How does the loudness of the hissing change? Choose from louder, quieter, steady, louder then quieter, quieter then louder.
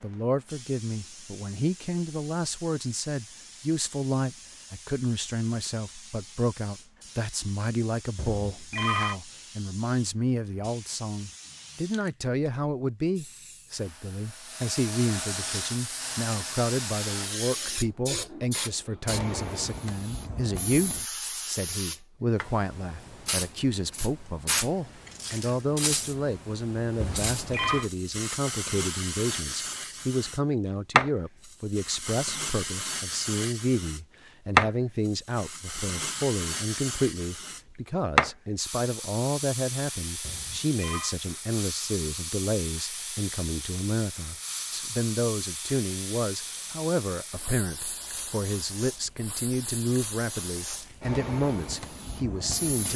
louder then quieter.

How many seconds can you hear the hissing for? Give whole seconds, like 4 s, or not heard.
53 s.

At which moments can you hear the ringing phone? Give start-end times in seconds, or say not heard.
8.2-9.2, 27.0-27.9, 40.2-41.1.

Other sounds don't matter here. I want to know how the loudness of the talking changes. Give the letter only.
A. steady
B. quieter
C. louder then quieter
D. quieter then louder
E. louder
A.